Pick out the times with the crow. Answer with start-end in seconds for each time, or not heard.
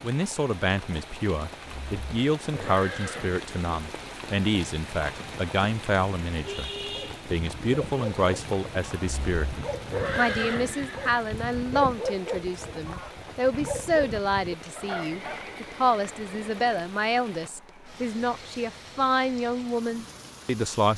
not heard.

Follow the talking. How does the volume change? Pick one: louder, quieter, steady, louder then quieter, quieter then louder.
steady.